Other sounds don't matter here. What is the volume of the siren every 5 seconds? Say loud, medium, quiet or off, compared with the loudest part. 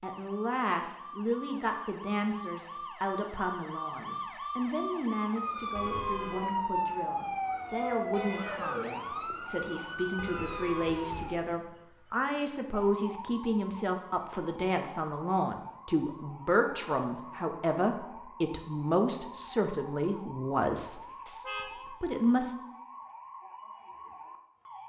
medium, loud, medium, quiet, quiet.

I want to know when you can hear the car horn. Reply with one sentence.
The car horn can be heard from 5.8 to 6.5 s, from 10.2 to 11.6 s and from 20.9 to 21.9 s.